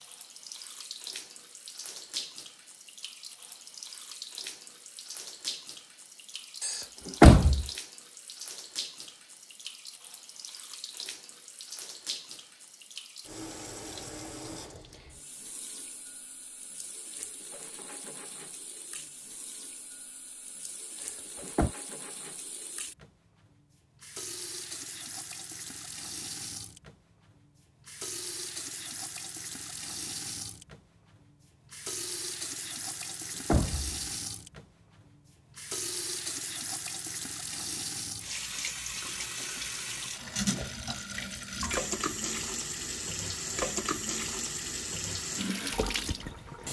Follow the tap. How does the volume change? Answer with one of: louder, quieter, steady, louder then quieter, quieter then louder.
louder.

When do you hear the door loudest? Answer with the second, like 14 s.
7 s.